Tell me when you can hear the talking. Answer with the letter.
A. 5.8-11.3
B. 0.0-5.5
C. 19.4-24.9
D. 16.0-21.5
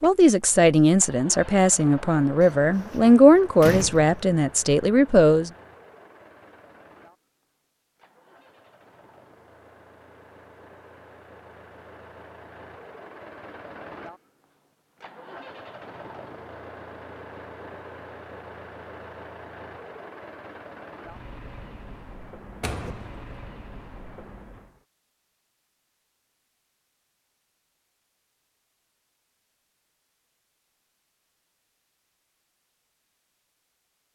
B.